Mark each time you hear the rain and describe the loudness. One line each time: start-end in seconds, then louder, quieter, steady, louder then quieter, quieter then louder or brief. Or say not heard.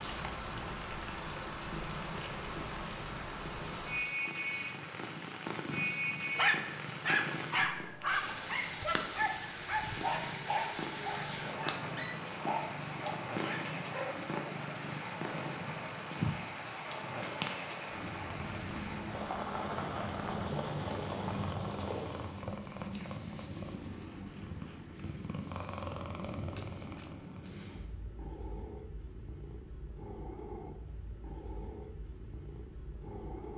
0.0-22.5 steady.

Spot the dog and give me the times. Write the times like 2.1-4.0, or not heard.
6.3-14.2.